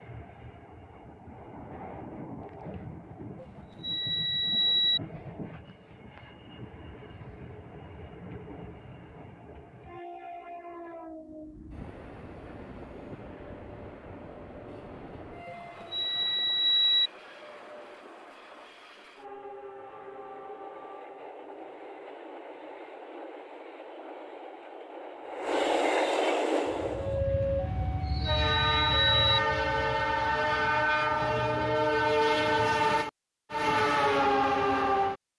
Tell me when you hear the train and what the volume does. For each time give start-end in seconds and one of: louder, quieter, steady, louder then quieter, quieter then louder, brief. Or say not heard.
0.0-35.1 louder.